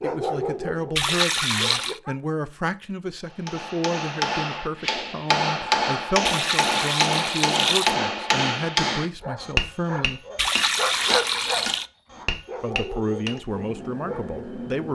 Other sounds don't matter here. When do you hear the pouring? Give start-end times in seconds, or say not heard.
0.9-2.0, 6.2-8.0, 10.3-11.9.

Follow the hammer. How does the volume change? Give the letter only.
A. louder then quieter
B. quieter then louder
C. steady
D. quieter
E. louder
D.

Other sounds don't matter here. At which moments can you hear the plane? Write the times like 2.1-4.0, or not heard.
13.4-14.9.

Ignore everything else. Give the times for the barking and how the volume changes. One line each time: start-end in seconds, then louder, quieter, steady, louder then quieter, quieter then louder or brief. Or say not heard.
0.0-2.1 brief
9.2-14.4 louder then quieter.